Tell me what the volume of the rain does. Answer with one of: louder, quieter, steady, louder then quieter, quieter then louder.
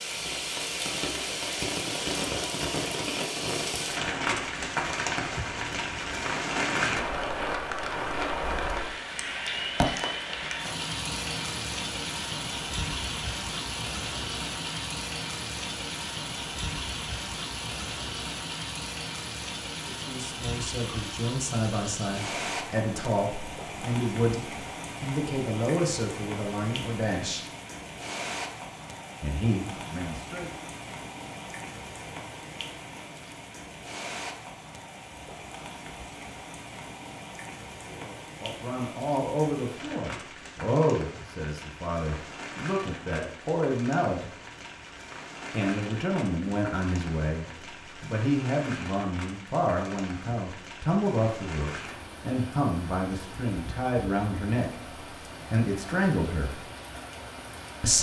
quieter.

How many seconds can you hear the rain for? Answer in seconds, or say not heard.
58 s.